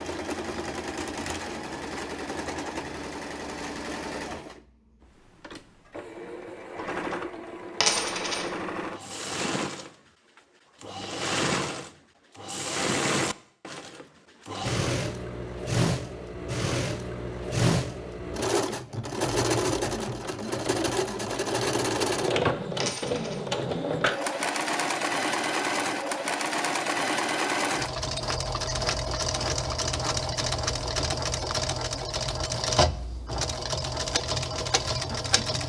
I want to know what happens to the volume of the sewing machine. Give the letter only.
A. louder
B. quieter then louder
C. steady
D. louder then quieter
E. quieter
A.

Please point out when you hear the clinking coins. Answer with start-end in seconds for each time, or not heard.
7.8-8.5, 22.8-23.4.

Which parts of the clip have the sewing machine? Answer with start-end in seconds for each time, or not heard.
0.0-35.6.